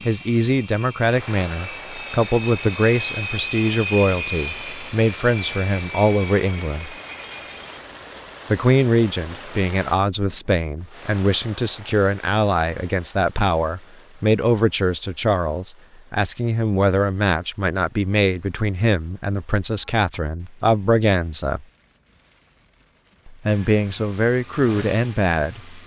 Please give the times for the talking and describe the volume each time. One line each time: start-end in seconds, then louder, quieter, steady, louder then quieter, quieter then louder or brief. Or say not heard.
0.1-7.0 steady
8.5-21.6 steady
23.2-25.8 brief.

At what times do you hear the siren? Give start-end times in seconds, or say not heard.
not heard.